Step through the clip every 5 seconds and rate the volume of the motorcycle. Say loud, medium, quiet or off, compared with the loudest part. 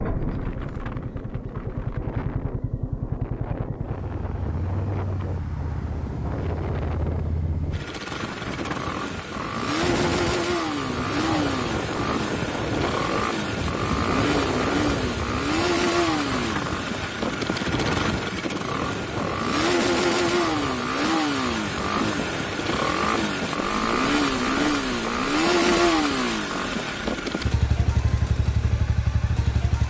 medium, medium, loud, loud, loud, loud.